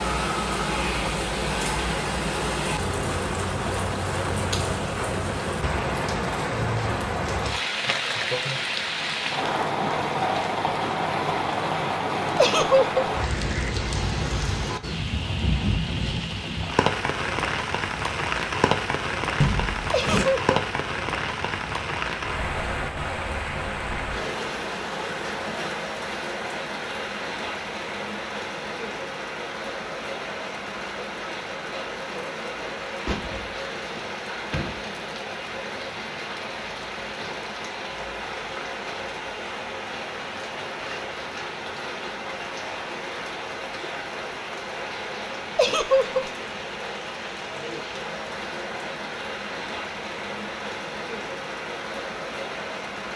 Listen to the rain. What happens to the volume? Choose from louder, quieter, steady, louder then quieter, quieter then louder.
quieter.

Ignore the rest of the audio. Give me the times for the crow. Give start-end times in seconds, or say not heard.
not heard.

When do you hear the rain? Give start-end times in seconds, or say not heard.
0.0-53.1.